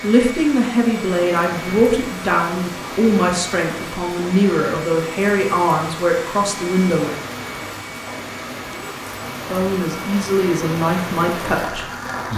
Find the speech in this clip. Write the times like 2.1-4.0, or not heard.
0.0-7.2, 9.4-12.3.